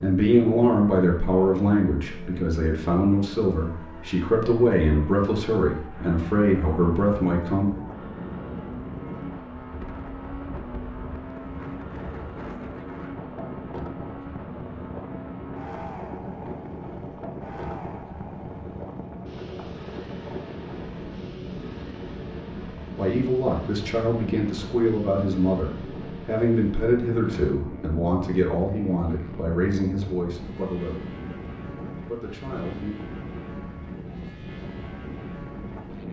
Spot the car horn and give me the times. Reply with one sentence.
The car horn can't be heard in this clip.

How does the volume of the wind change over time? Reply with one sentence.
The volume of the wind stays about the same.